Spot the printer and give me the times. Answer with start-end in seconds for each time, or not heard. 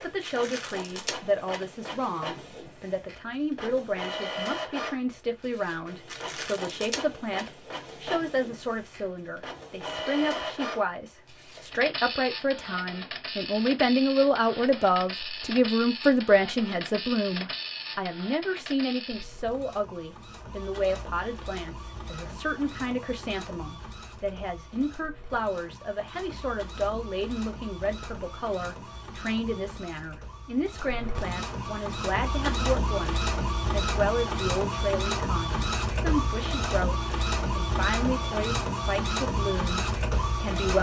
0.0-40.7.